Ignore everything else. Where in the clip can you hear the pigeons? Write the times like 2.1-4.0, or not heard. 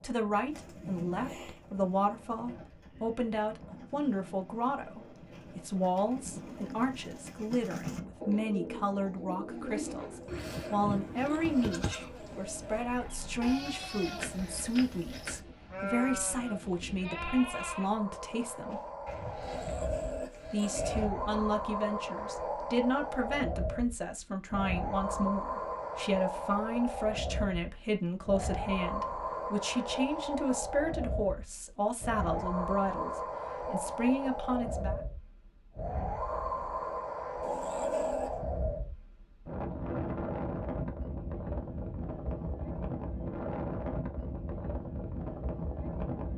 0.5-11.7.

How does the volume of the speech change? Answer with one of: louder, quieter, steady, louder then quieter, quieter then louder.
steady.